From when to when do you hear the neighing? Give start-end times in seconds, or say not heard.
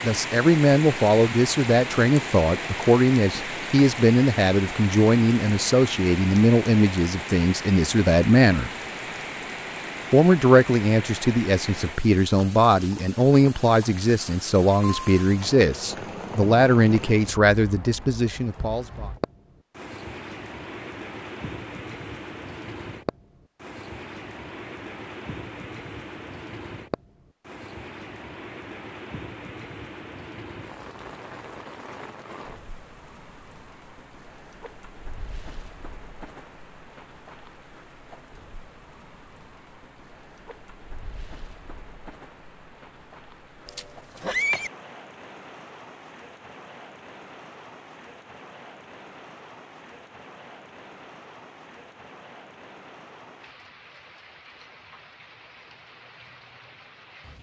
43.6-44.7.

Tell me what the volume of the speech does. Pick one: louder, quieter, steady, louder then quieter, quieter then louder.
steady.